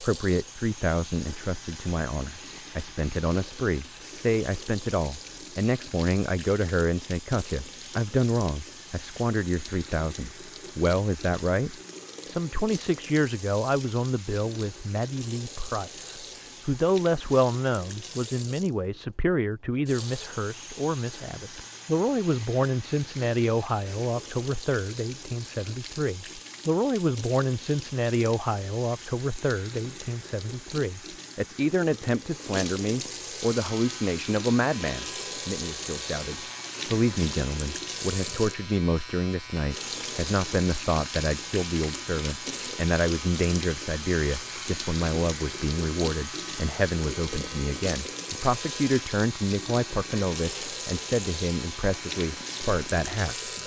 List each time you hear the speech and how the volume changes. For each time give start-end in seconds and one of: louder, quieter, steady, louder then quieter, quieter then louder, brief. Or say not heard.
0.0-53.6 steady.